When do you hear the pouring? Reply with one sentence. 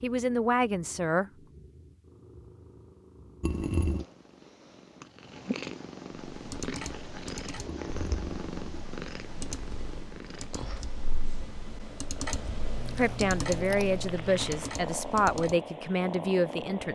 The pouring can be heard from 3.4 to 4.0 s, from 7.7 to 8.8 s and from 12.8 to 14.6 s.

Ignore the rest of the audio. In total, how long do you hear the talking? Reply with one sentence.
You can hear the talking for 5 seconds altogether.